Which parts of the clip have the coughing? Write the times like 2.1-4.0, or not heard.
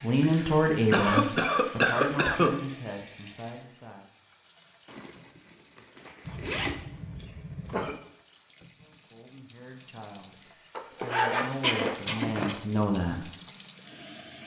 0.2-2.5, 6.2-8.0, 11.6-12.6.